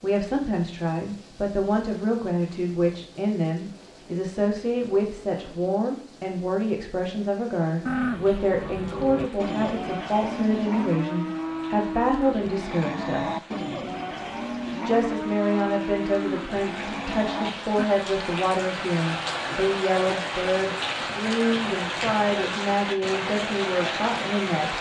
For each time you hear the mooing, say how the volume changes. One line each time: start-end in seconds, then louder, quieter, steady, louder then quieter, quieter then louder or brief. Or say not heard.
7.8-17.9 steady.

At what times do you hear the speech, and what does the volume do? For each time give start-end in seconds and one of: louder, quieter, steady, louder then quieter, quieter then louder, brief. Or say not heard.
0.0-13.4 steady
14.7-24.7 steady.